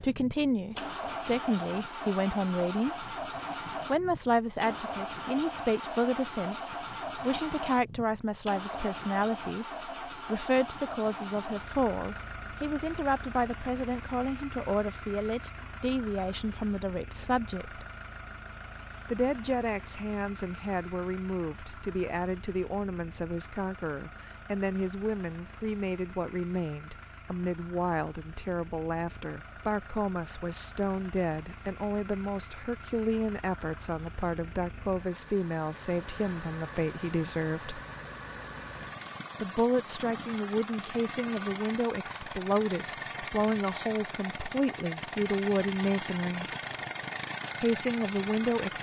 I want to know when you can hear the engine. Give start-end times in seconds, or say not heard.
0.0-48.7.